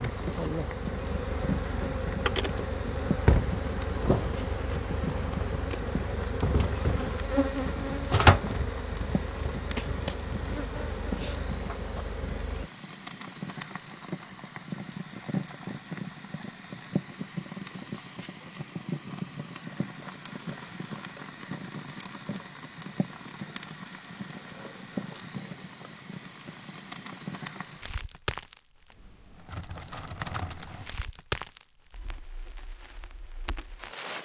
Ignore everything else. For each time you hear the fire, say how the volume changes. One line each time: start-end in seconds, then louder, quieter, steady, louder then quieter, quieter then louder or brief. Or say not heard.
0.0-34.2 steady.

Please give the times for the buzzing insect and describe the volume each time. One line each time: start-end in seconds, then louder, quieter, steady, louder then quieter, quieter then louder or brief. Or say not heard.
0.0-12.7 louder then quieter.